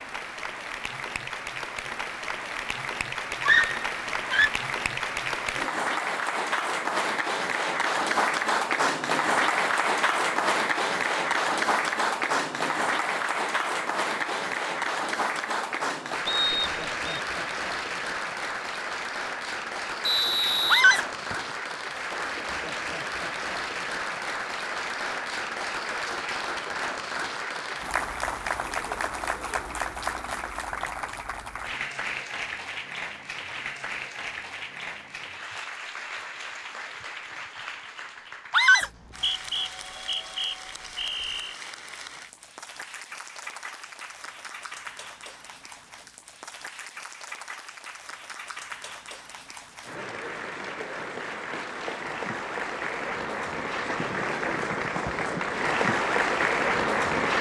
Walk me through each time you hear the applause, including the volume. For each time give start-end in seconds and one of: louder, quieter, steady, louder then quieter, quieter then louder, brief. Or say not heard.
0.0-57.3 quieter then louder.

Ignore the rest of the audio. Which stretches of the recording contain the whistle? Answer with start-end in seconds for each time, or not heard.
16.2-17.2, 20.0-21.5, 38.8-41.5.